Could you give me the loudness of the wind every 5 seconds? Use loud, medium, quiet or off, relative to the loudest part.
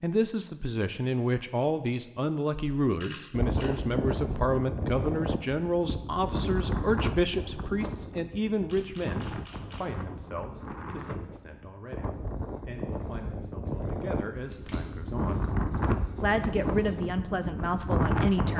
loud, medium, medium, loud.